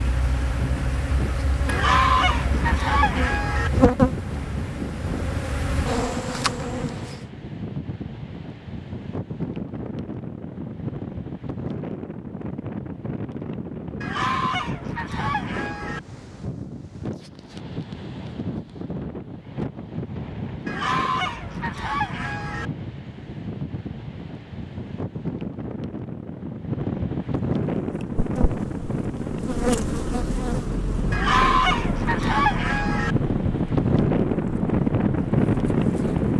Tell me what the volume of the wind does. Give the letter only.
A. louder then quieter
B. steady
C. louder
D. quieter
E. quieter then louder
C.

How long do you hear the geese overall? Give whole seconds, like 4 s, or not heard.
8 s.